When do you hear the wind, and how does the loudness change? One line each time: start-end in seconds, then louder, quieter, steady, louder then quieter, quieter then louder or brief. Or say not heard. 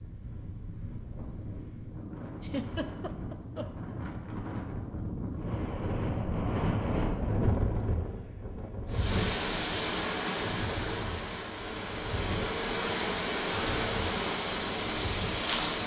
0.0-15.6 louder then quieter.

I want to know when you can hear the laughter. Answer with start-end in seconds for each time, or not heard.
2.4-3.9.